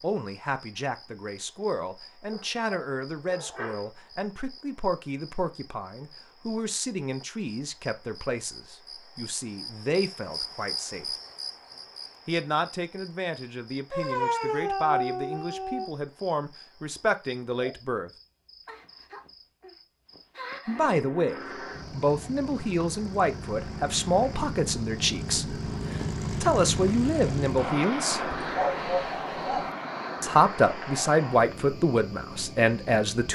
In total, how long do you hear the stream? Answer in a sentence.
The stream can't be heard in this clip.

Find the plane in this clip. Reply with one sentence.
The plane can be heard from 20.6 to 33.2 s.